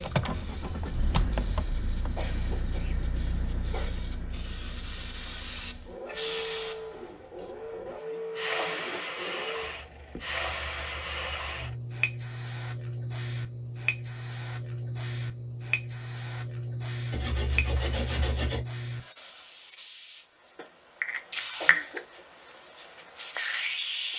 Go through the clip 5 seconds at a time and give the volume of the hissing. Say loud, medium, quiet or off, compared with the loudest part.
quiet, loud, loud, loud, loud.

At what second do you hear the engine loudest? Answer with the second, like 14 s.
1 s.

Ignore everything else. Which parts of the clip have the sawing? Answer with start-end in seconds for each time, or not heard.
17.1-18.6.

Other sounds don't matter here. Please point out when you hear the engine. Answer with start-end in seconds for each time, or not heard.
0.0-11.8.